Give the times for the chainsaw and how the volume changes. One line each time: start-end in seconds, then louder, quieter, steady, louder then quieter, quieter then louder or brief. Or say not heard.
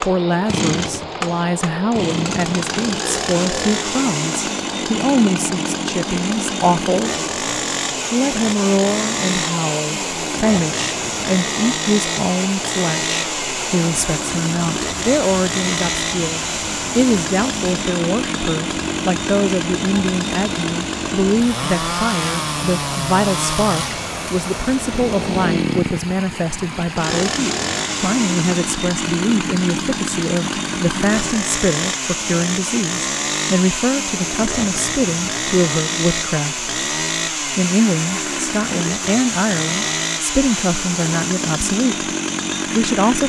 0.0-43.2 steady.